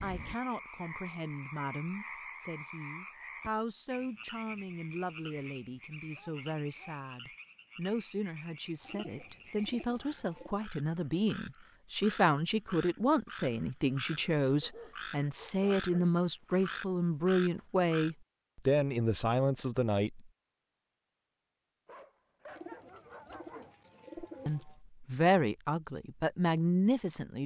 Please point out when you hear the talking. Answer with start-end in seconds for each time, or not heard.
0.0-20.2, 24.4-27.4.